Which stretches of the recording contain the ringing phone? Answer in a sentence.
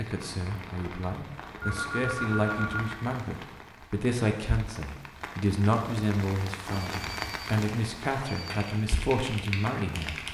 The ringing phone can be heard from 1.6 to 3.0 s and from 6.7 to 8.8 s.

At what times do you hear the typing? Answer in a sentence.
The typing can be heard from 8.5 to 10.2 s.